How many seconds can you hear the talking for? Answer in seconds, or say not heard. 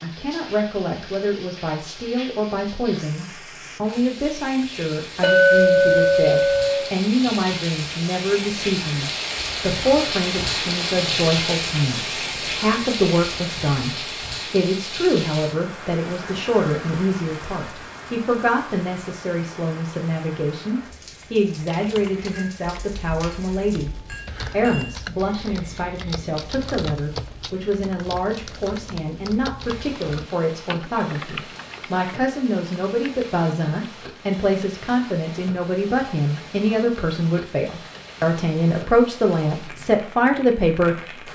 41 s.